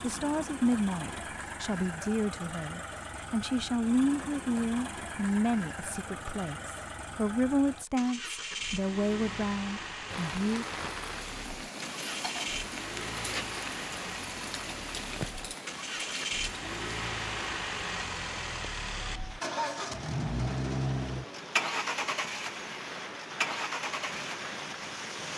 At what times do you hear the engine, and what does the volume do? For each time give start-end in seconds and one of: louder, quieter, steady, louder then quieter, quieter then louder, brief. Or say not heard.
0.0-25.3 louder.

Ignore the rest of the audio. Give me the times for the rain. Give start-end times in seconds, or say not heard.
10.1-25.3.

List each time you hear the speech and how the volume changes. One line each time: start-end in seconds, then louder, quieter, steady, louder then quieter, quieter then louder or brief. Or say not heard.
0.0-10.7 steady.